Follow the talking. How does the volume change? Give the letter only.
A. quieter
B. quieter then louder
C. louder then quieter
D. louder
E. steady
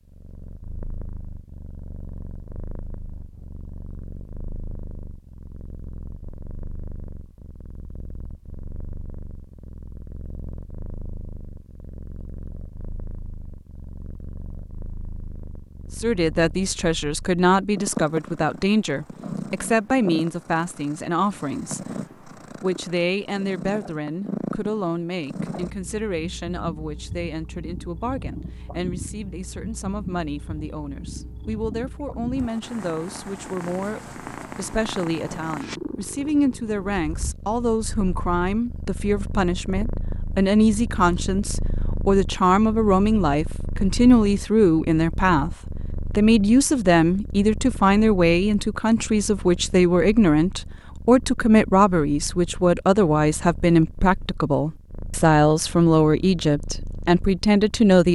B.